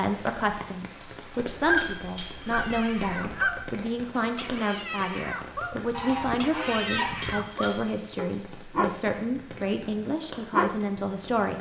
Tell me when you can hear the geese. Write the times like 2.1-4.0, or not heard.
1.4-3.7, 5.9-7.5.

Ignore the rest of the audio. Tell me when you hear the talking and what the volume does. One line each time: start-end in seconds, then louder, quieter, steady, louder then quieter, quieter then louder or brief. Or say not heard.
0.0-11.5 steady.